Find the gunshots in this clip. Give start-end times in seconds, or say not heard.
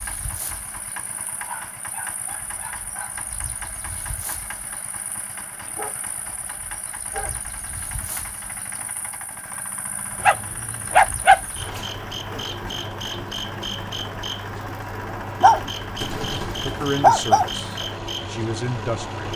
15.9-17.0.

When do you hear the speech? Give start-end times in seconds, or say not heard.
16.5-19.3.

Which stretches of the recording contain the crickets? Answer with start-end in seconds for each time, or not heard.
0.0-19.3.